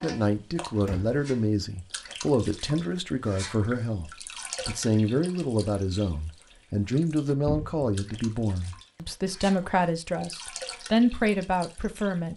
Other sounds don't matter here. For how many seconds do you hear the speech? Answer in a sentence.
You can hear the speech for 12 seconds altogether.